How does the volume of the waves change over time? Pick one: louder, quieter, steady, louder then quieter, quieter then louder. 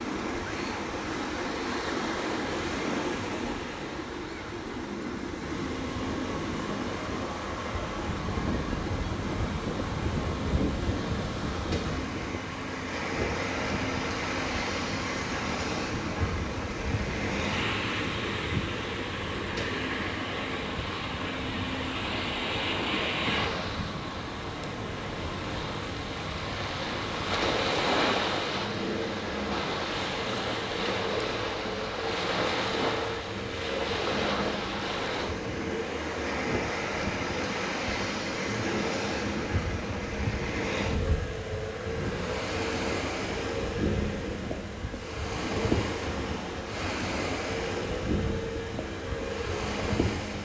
steady.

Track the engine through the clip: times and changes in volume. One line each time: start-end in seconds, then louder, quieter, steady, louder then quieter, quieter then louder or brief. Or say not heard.
5.4-50.4 steady.